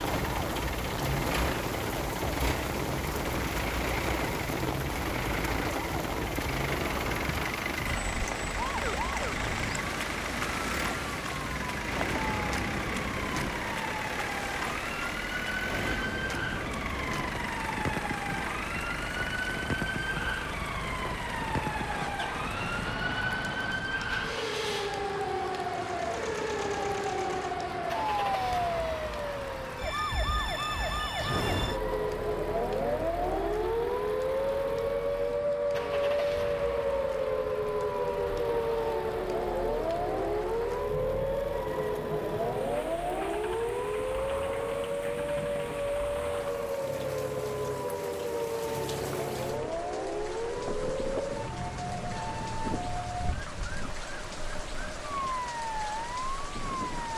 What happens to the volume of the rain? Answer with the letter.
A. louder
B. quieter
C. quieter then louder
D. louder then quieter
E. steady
B.